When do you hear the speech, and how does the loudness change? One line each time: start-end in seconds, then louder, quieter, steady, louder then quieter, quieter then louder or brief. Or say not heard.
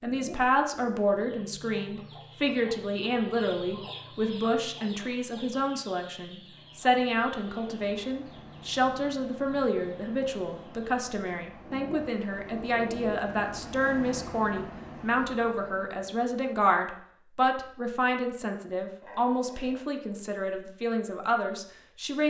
0.0-22.2 steady.